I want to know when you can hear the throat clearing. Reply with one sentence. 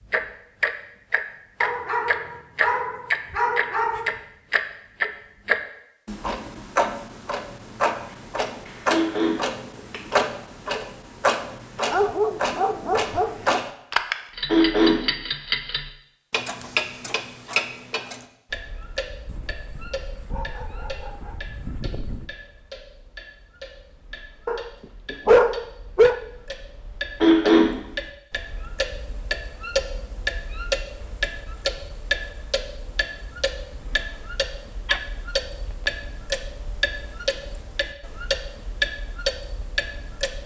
The throat clearing can be heard from 8.8 to 9.3 s, from 14.4 to 14.9 s and from 27.2 to 27.6 s.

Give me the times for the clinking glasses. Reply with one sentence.
You can't hear the clinking glasses here.